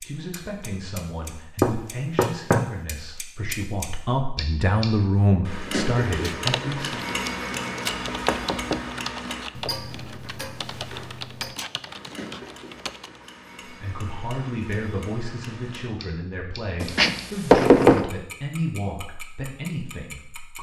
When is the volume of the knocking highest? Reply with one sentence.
The loudest moment of the knocking is at 18 seconds.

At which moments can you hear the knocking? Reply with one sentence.
You can hear the knocking from 1.6 to 2.7 s, from 8.2 to 8.8 s and from 16.8 to 18.1 s.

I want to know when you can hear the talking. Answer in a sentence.
The talking can be heard from 0.0 to 7.1 s and from 13.7 to 20.5 s.